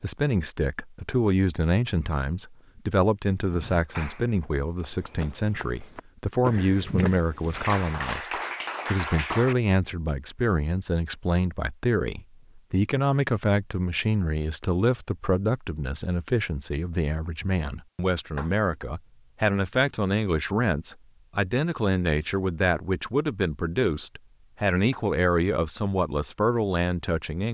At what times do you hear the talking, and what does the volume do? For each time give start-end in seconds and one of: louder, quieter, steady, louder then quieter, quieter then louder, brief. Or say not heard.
0.0-27.5 steady.